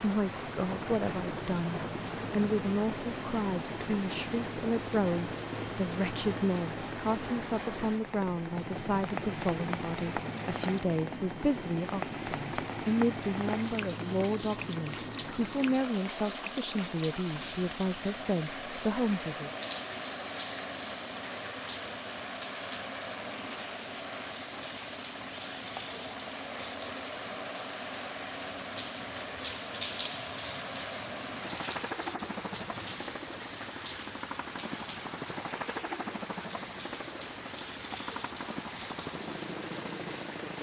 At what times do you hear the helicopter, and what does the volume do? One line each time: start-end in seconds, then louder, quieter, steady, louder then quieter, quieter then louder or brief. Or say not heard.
0.0-40.5 steady.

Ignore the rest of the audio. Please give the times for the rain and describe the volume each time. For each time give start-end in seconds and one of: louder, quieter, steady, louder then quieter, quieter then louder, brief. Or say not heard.
0.0-40.5 steady.